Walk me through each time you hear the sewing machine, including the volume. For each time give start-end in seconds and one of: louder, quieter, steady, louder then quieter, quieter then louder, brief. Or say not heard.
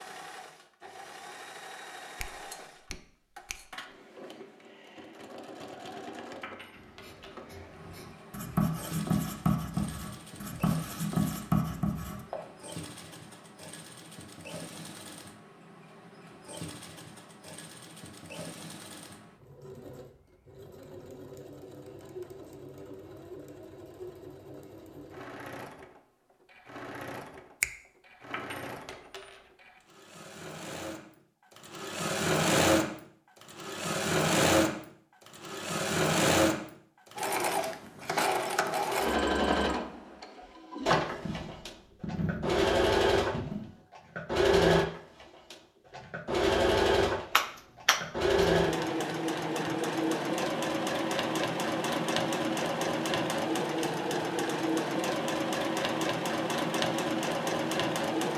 0.0-58.3 louder.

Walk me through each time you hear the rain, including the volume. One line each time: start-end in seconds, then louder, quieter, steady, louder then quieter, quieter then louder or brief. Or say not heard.
not heard.